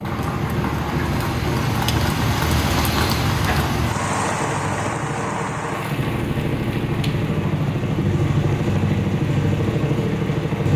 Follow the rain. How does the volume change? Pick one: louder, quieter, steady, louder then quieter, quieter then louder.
quieter.